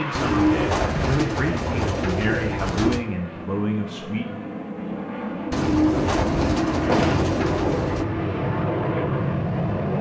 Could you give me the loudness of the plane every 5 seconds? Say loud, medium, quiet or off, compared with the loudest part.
medium, loud.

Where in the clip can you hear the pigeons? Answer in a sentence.
You can hear the pigeons from 0.1 to 3.0 s and from 5.5 to 8.1 s.